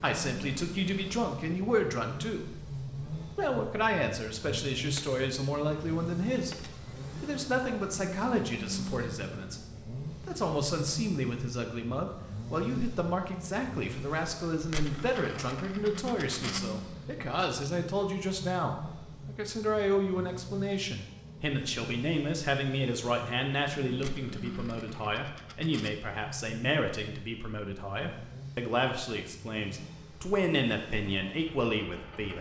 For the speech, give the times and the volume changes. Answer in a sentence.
The speech can be heard from 0.0 to 32.3 s, at a steady volume.